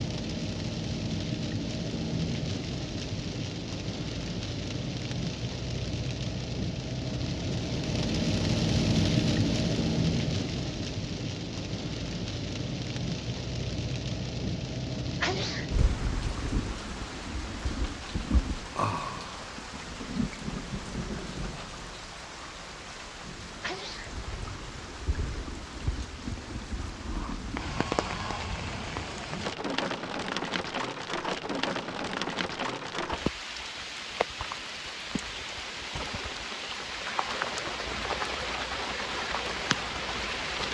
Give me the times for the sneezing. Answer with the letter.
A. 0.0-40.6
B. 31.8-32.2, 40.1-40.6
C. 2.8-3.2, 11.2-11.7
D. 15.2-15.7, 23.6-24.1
D.